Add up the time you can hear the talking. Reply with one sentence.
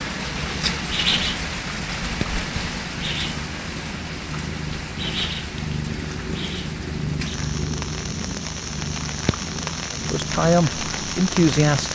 You can hear the talking for 2 seconds altogether.